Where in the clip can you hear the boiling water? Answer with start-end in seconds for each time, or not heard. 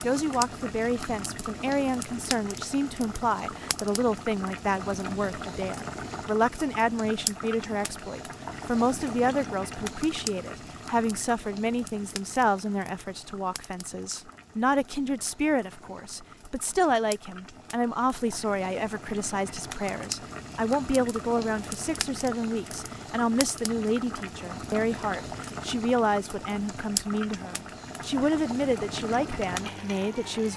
0.0-30.5.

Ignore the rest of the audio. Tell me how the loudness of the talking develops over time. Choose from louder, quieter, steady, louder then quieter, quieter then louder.
steady.